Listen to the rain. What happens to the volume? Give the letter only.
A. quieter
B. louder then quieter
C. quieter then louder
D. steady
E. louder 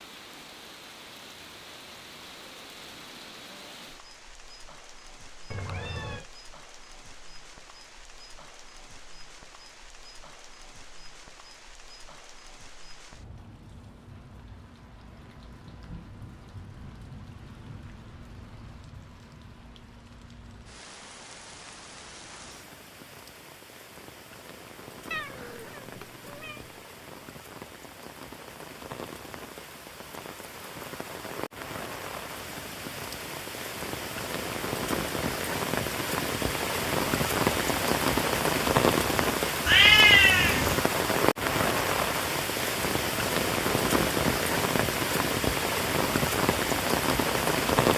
E.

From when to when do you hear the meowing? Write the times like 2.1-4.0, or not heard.
5.5-6.2, 25.1-26.8, 39.6-40.8.